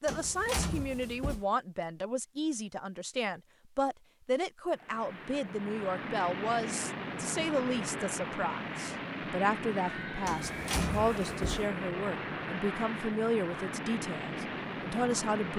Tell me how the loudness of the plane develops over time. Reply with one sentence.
The loudness of the plane stays about the same.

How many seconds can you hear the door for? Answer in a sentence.
The door can be heard for 3 seconds in total.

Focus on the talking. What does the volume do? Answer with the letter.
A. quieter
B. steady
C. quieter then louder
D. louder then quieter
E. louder
B.